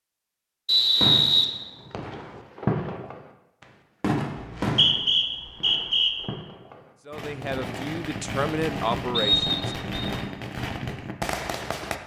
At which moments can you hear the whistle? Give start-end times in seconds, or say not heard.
0.7-2.1, 4.3-6.1, 9.1-10.1.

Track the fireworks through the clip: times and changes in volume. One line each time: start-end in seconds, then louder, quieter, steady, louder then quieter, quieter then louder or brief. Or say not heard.
0.9-11.9 quieter then louder.